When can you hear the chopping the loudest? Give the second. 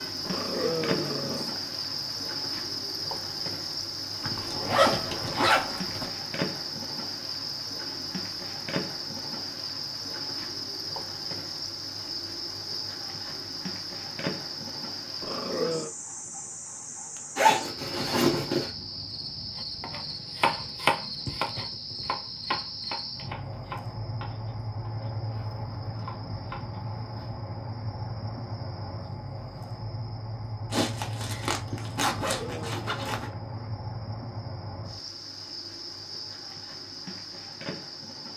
21 s.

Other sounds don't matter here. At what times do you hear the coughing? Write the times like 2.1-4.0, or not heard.
not heard.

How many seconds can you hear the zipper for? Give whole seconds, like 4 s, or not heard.
6 s.